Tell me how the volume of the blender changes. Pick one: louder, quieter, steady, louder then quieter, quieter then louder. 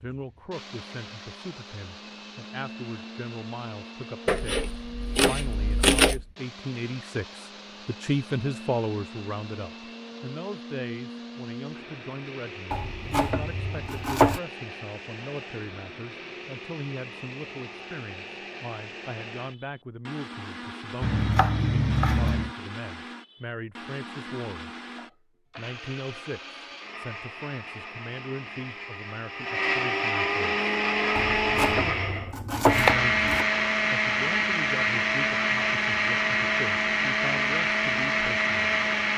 louder.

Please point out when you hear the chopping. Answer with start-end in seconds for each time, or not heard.
4.2-6.2, 12.7-14.4, 21.0-22.6, 31.1-33.5.